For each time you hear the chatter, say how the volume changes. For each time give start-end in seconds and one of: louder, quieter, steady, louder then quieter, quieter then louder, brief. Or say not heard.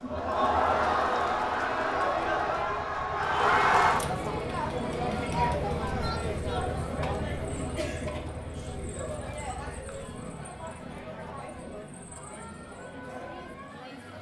0.0-14.1 quieter.